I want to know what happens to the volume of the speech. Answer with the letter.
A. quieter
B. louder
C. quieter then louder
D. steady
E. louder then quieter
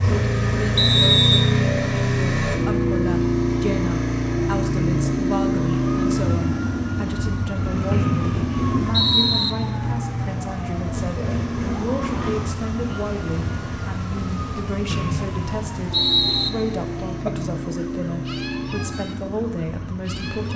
D.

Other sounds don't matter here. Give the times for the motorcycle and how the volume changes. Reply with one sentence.
The motorcycle can be heard from 0.0 to 20.5 s, getting quieter.